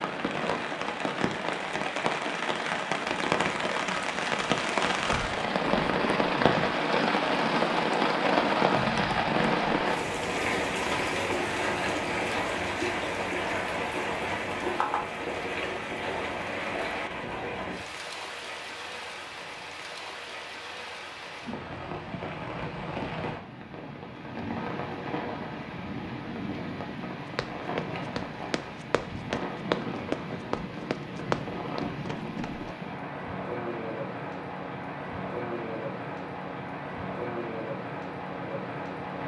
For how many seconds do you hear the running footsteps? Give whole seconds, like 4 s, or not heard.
5 s.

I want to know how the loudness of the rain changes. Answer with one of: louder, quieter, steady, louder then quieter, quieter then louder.
quieter.